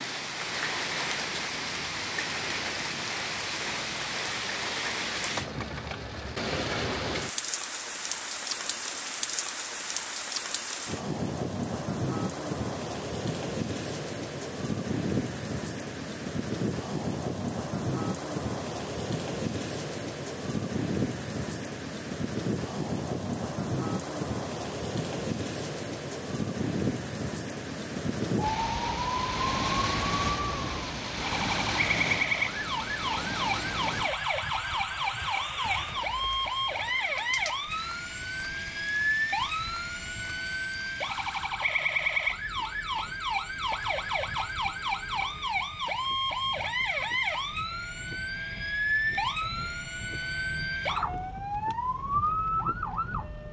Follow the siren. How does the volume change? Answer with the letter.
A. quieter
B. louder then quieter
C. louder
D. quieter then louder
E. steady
E.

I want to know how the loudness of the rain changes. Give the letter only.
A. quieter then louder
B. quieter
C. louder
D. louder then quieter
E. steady
B.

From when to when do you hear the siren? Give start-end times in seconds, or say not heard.
28.4-53.4.